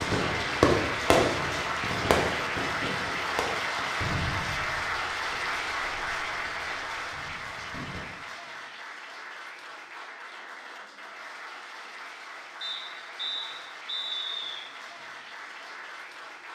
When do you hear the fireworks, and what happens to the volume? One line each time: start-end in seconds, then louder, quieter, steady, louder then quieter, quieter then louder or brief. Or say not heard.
0.0-8.1 quieter.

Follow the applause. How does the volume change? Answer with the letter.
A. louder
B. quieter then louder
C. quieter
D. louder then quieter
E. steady
C.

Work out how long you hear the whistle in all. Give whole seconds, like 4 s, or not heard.
2 s.